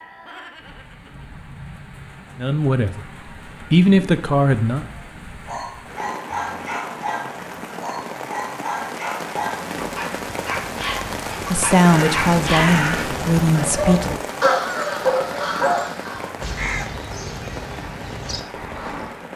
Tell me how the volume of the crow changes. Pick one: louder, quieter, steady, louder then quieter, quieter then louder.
quieter.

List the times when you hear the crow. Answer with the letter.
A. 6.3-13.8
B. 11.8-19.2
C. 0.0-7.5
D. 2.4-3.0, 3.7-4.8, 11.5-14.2
B.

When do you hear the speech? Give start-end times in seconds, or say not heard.
2.4-3.0, 3.7-4.8, 11.5-14.2.